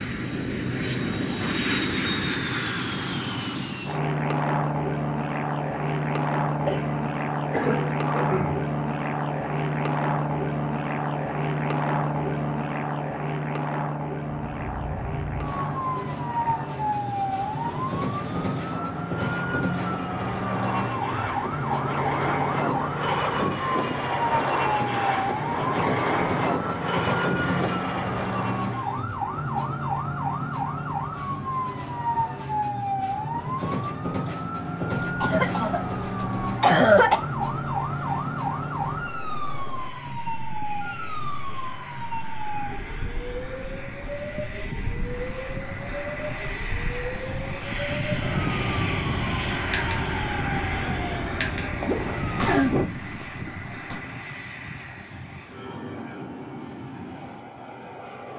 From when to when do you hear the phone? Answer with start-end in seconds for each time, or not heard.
not heard.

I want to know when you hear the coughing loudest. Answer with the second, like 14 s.
37 s.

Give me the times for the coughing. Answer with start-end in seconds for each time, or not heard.
6.7-8.7, 35.2-37.1, 52.4-54.0.